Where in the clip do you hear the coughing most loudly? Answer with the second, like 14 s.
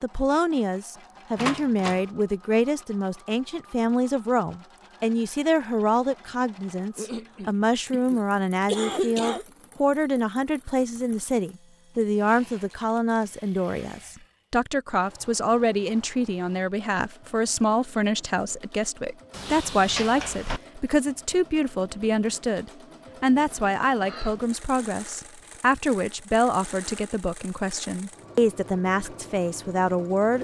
9 s.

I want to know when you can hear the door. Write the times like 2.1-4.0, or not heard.
1.4-2.0, 19.3-20.6.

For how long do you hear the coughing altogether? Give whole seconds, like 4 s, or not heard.
3 s.